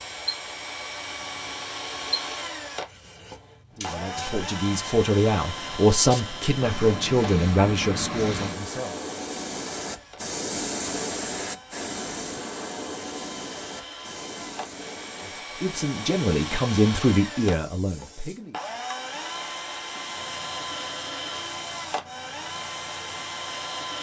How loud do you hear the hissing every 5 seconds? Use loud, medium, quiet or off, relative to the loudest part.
medium, loud, loud, quiet, quiet.